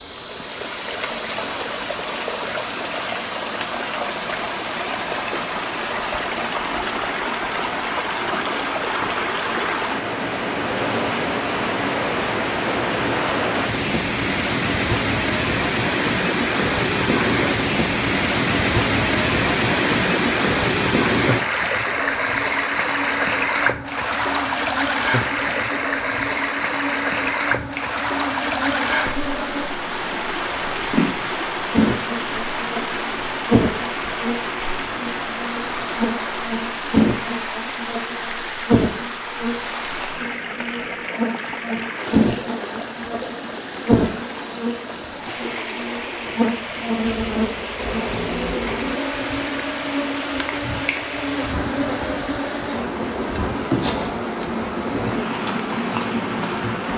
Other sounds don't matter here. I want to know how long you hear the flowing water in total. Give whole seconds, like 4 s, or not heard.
57 s.